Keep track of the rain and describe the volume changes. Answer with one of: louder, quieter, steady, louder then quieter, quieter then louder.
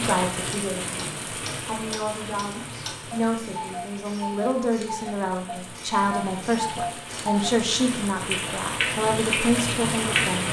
quieter then louder.